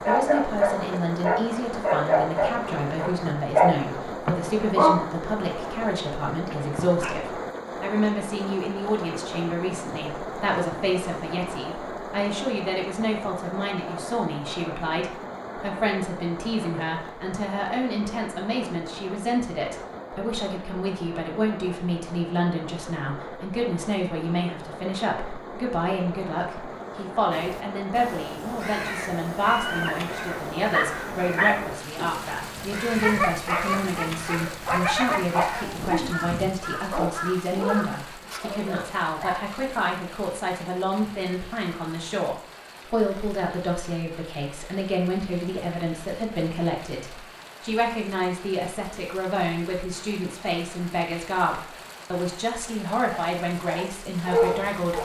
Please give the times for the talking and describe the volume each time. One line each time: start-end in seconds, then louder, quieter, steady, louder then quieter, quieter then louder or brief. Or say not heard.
0.1-55.0 steady.